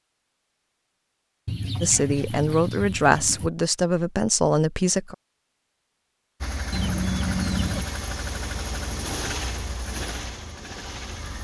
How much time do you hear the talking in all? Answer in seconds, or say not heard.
3 s.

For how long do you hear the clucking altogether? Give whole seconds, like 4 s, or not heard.
3 s.